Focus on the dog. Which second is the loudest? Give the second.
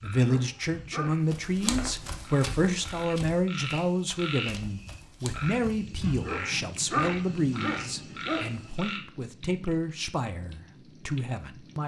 7 s.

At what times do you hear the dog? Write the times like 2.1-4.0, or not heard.
0.1-1.9, 6.1-8.7.